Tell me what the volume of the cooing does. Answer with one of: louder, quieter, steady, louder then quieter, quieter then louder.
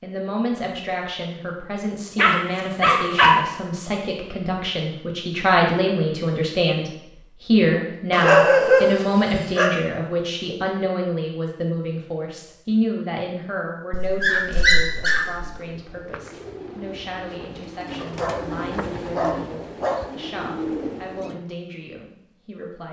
louder.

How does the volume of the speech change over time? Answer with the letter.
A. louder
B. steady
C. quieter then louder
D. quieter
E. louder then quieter
E.